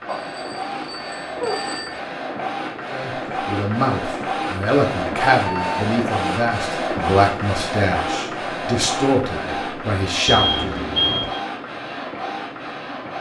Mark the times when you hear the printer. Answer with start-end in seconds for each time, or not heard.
0.0-13.1.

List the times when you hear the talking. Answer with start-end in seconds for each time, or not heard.
2.9-10.8.